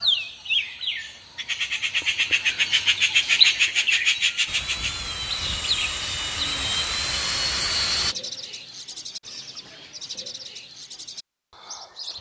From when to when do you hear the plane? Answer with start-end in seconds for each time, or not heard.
4.5-8.2.